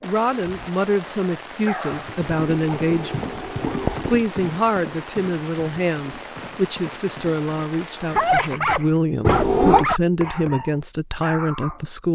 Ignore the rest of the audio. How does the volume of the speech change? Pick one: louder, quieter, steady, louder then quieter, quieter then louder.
steady.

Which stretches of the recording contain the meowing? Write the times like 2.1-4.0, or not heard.
2.2-4.2, 9.2-9.8.